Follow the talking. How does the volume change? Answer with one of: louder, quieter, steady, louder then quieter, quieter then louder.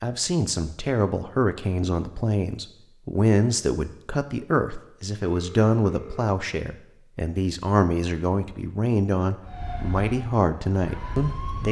steady.